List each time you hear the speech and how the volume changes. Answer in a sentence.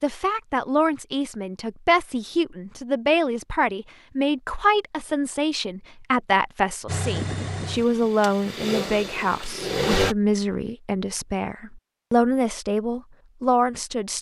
You can hear the speech from 0.0 to 14.1 s, at a steady volume.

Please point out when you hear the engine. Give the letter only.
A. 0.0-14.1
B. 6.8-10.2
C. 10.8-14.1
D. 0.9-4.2
B.